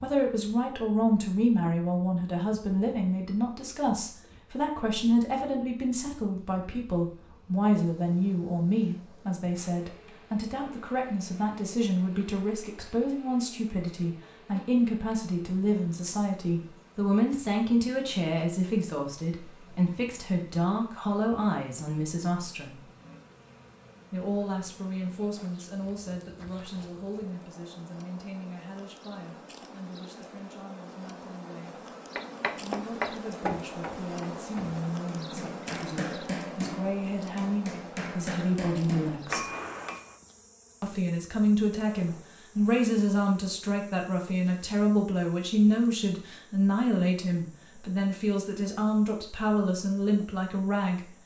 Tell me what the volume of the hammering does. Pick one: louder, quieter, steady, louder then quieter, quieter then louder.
quieter then louder.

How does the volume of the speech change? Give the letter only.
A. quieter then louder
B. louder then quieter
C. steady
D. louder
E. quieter
A.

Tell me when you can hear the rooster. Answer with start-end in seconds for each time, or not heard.
not heard.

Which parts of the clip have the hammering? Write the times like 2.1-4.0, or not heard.
32.1-40.1.